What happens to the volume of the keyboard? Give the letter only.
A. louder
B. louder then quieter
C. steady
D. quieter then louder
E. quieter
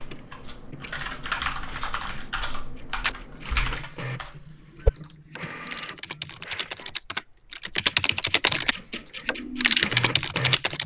A.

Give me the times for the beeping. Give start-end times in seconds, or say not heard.
not heard.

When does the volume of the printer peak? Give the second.
10 s.